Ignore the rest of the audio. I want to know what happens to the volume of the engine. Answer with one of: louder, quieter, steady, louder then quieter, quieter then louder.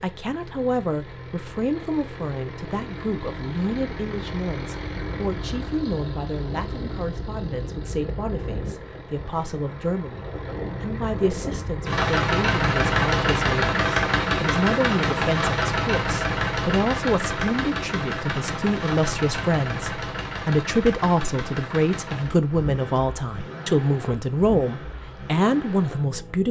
louder then quieter.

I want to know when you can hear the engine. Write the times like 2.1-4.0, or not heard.
0.0-26.4.